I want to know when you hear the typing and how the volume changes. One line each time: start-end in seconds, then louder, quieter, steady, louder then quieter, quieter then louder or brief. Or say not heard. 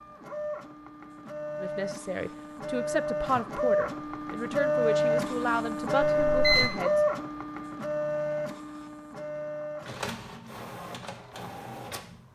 not heard.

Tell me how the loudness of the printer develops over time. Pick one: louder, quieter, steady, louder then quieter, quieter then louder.
louder then quieter.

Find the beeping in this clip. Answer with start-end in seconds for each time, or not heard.
6.0-6.7.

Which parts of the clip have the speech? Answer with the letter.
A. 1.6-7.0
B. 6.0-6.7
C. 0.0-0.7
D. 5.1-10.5
A.